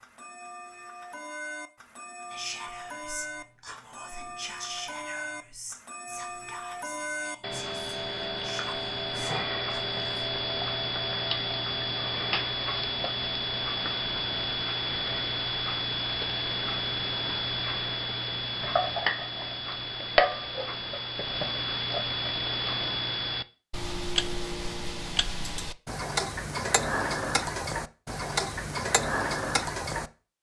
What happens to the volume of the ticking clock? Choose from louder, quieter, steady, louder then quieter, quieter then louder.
louder.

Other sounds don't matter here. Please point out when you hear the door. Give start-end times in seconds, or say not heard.
not heard.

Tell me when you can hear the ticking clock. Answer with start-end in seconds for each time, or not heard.
0.0-30.1.